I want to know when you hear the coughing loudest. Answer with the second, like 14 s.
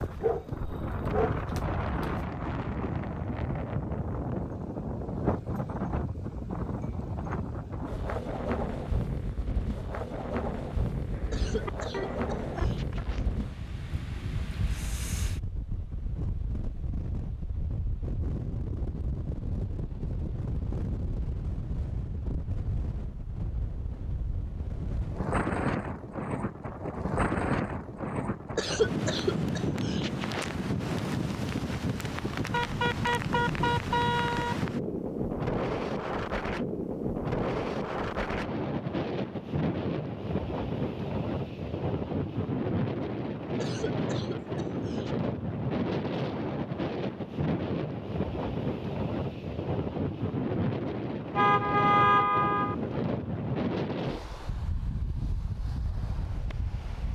29 s.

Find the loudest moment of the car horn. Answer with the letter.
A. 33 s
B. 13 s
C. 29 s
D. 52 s
D.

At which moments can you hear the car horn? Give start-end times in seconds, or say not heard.
11.1-13.1, 32.5-34.5, 51.4-52.8.